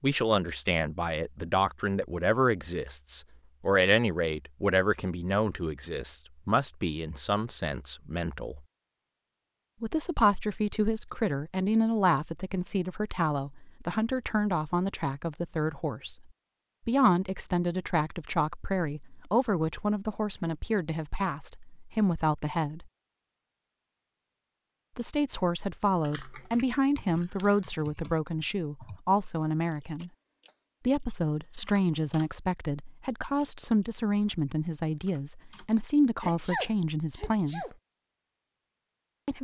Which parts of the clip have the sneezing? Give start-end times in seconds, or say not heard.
36.2-37.7.